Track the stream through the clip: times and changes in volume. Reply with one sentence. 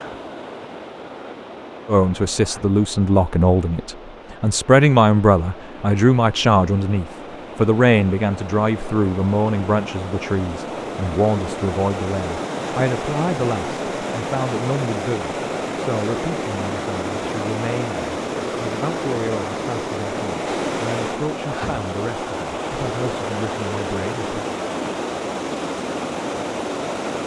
The stream can be heard from 0.0 to 27.2 s, getting louder.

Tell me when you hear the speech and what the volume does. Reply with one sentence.
You can hear the speech from 1.9 to 24.4 s, getting quieter.